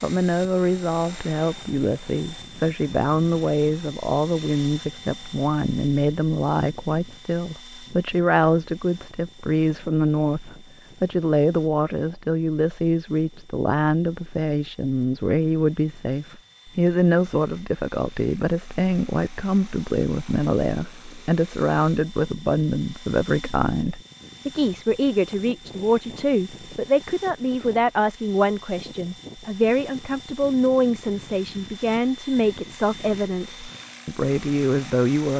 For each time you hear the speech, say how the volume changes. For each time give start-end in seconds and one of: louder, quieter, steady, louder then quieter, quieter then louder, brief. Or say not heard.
0.0-35.3 steady.